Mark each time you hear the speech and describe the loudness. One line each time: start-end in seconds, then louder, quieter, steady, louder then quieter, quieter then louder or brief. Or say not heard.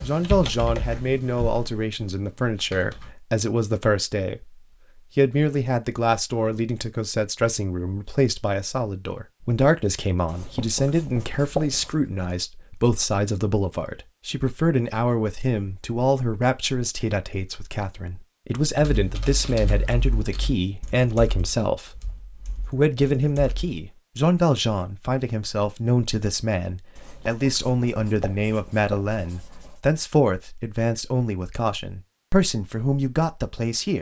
0.0-33.9 steady.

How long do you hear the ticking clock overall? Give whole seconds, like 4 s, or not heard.
not heard.